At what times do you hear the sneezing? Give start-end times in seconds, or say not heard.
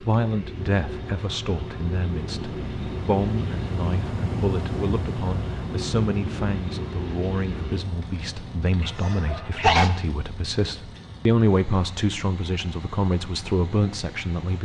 8.8-9.9.